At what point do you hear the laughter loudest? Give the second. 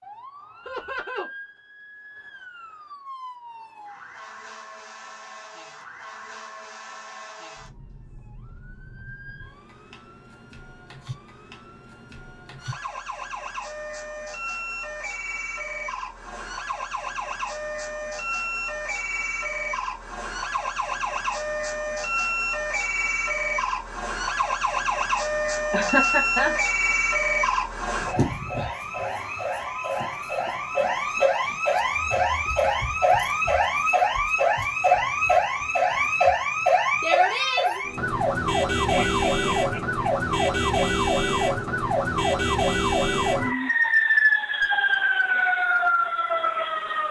26 s.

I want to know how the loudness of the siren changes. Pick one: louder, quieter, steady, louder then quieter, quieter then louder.
louder.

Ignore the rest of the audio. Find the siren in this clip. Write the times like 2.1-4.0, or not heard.
0.0-47.0.